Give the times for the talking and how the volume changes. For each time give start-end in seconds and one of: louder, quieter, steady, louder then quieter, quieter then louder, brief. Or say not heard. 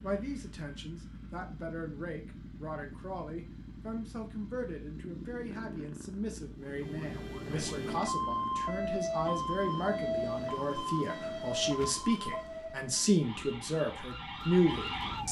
0.0-15.2 louder.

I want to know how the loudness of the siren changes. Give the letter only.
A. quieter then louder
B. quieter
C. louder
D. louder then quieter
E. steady
B.